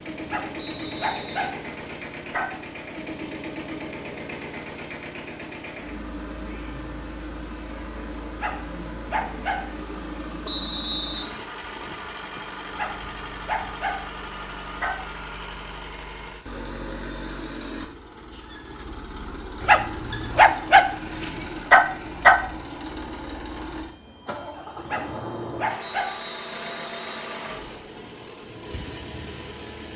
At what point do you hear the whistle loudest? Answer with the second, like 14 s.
11 s.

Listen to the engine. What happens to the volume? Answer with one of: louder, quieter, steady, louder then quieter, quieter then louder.
steady.